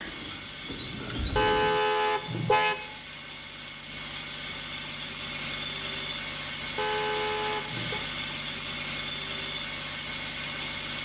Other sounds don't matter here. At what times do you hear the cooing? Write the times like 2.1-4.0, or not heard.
0.0-1.8.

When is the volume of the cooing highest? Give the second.
1 s.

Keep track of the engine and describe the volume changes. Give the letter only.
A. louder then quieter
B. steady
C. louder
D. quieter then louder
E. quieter
C.